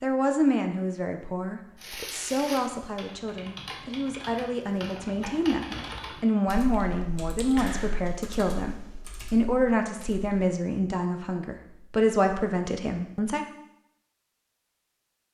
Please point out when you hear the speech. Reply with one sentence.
You can hear the speech from 0.0 to 13.4 s.